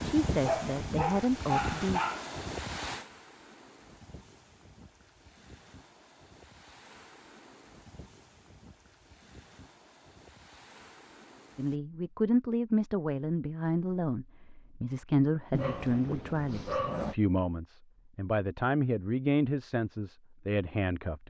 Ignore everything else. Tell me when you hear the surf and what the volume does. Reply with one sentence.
The surf can be heard from 0.0 to 11.8 s, getting quieter.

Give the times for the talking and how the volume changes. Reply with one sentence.
You can hear the talking briefly from 0.0 to 2.0 s; and from 11.6 to 21.2 s, at a steady volume.